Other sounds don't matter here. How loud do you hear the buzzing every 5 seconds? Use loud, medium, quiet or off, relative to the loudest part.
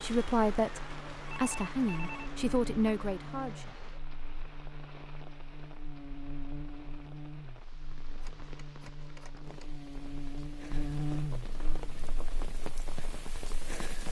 medium, medium, loud.